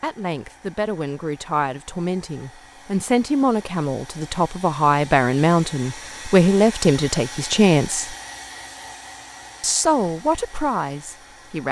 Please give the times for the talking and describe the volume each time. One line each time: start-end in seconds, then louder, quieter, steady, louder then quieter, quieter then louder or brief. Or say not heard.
0.0-8.2 louder
9.6-11.6 brief.